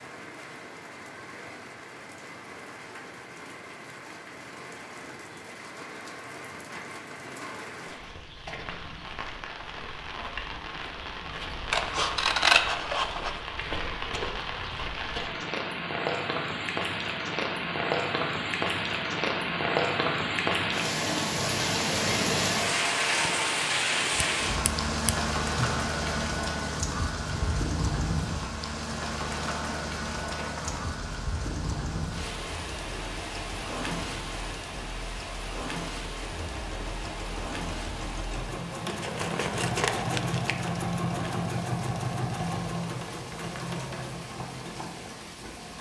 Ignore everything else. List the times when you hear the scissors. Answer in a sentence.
The scissors can be heard from 11.7 to 13.4 s, from 24.1 to 25.1 s and from 38.9 to 40.8 s.